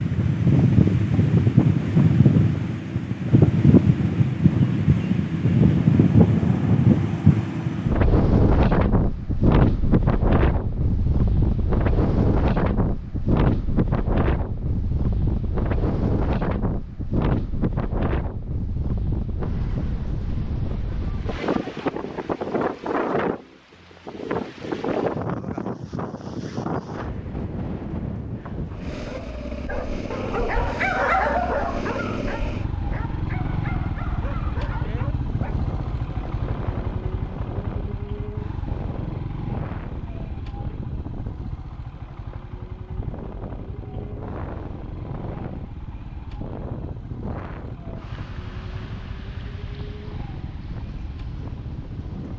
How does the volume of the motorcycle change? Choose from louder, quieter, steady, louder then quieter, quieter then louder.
quieter.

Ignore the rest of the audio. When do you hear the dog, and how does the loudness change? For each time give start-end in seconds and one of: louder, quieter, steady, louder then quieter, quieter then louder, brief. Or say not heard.
29.1-35.5 louder then quieter.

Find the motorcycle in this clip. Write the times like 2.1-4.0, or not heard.
28.6-52.3.